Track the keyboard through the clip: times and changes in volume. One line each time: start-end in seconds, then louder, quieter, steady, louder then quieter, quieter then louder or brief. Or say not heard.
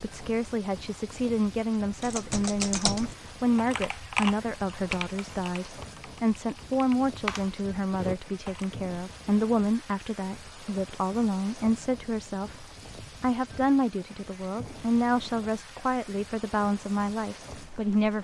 1.9-8.7 quieter then louder.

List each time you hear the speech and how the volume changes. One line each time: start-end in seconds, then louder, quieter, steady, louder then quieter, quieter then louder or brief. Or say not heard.
0.0-18.1 steady.